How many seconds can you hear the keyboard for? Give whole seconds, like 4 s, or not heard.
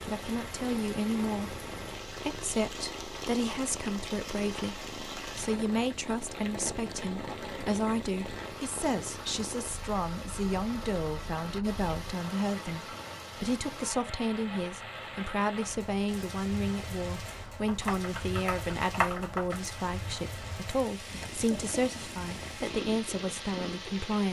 2 s.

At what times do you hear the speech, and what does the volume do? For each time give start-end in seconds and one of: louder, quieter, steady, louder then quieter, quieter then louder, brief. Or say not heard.
0.0-24.2 steady.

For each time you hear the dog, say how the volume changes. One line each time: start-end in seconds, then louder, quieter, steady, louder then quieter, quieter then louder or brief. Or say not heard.
not heard.